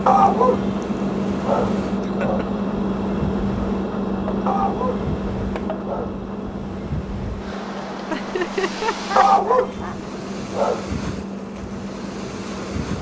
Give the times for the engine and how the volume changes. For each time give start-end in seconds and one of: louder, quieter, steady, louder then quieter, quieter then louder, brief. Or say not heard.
0.0-12.9 quieter.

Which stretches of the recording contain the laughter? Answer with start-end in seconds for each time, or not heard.
2.0-2.6, 8.1-10.0.